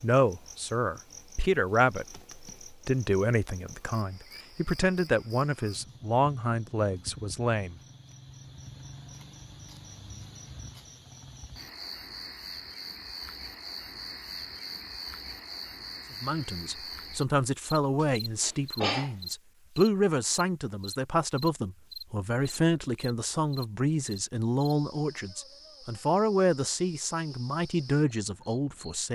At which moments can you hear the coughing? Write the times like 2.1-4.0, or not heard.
17.9-19.1.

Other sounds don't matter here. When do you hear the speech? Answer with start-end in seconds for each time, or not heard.
0.0-7.8, 16.2-29.1.